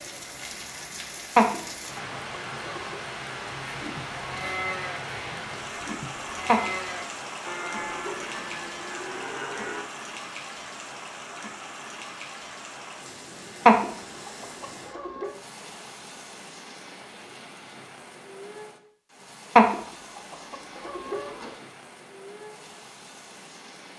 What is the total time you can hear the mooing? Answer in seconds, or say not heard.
6 s.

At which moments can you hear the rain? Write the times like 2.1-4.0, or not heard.
0.0-23.9.